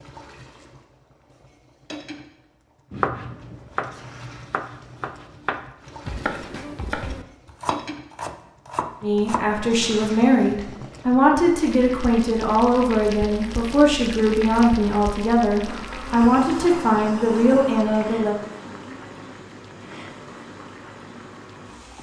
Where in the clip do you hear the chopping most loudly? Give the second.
3 s.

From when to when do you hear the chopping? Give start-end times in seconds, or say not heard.
2.9-9.4.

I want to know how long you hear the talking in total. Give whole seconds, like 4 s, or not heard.
9 s.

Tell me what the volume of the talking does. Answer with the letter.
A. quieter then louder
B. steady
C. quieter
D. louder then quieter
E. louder
B.